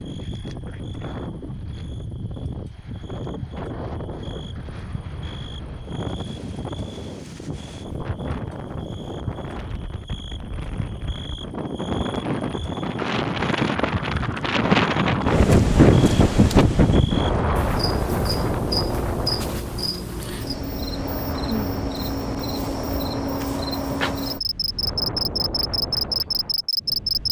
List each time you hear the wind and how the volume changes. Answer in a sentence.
You can hear the wind from 0.0 to 27.2 s, getting louder then quieter.